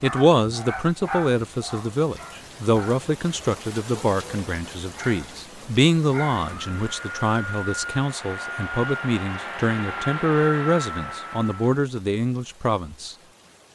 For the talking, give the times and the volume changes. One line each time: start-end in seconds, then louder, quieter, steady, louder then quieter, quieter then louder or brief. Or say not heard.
0.0-13.2 steady.